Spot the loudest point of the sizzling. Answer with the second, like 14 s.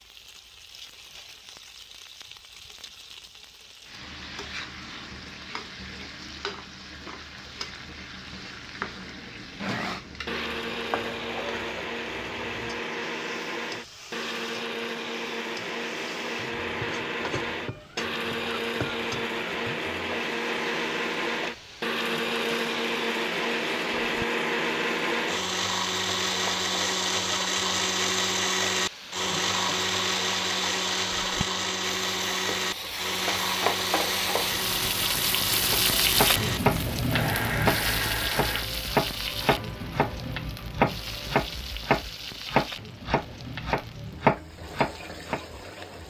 36 s.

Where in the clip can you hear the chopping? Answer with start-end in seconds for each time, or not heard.
35.5-45.4.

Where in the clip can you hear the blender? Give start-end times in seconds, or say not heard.
9.6-38.7.